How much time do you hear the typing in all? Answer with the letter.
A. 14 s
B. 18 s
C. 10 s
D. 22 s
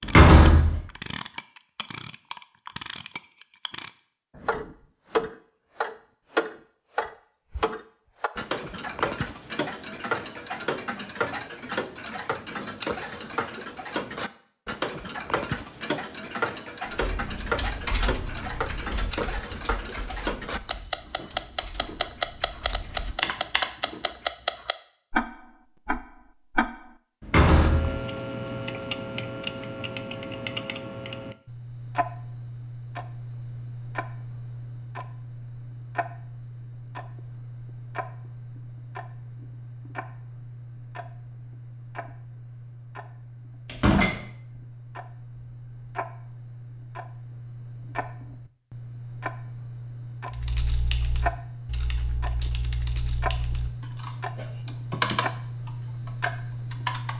A.